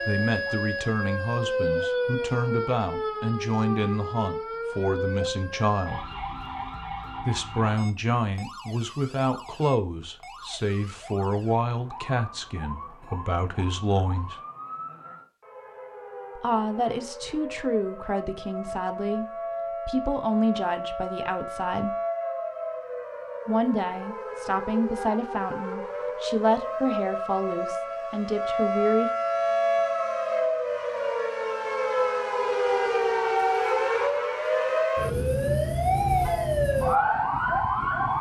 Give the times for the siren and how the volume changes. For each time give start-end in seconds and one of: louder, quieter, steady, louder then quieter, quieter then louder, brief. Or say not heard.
0.0-38.1 quieter then louder.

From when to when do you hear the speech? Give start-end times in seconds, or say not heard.
0.1-6.1, 7.2-14.3, 16.4-21.9, 23.4-29.1.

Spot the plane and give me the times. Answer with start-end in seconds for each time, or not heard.
not heard.